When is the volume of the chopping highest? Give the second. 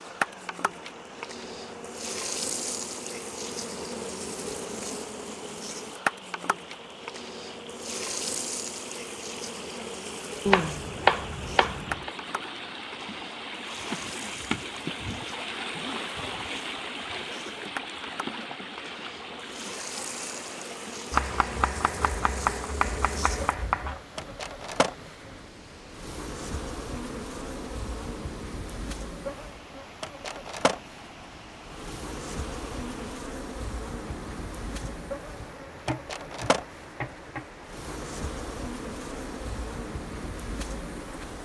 11 s.